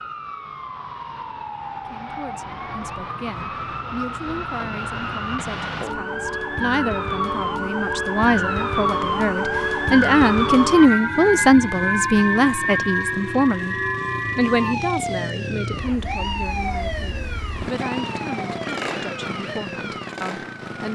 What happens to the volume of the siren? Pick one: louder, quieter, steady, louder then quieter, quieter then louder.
louder then quieter.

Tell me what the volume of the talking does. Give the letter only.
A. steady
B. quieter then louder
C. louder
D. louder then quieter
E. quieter
D.